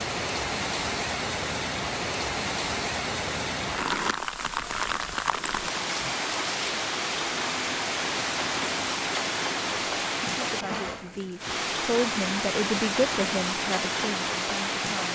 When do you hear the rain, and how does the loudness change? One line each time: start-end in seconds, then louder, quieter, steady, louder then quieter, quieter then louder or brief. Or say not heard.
0.0-15.1 steady.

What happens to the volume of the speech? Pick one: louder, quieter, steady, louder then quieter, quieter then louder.
louder then quieter.